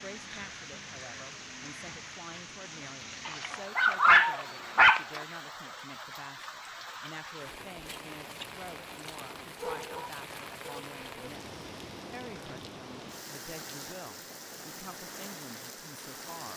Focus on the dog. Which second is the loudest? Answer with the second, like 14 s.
4 s.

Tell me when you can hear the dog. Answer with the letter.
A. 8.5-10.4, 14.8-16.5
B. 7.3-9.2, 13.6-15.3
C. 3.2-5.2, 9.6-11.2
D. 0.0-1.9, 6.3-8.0
C.